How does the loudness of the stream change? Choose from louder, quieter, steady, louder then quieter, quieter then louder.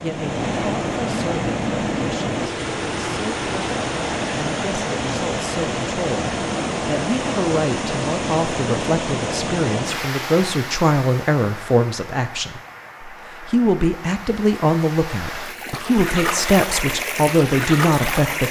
quieter then louder.